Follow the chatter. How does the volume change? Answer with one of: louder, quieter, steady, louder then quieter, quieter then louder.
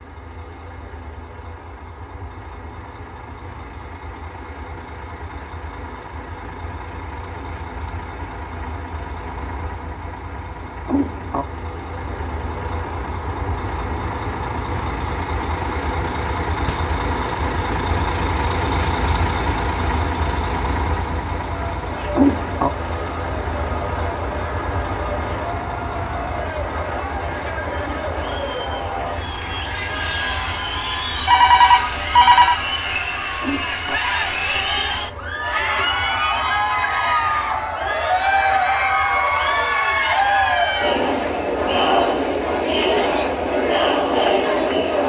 louder.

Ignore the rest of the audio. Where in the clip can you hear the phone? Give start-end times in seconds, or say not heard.
31.2-32.6.